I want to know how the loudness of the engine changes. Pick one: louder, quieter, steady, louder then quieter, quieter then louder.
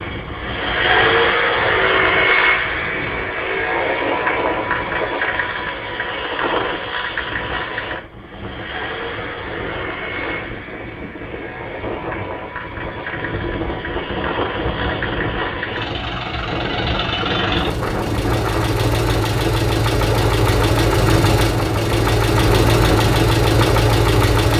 quieter then louder.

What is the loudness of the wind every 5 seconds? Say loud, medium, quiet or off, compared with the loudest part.
medium, medium, loud, loud, loud.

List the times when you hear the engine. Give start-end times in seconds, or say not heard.
0.0-24.5.